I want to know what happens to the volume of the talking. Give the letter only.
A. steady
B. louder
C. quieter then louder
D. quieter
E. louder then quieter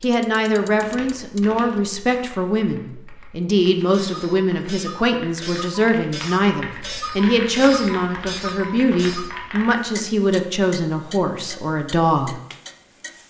A.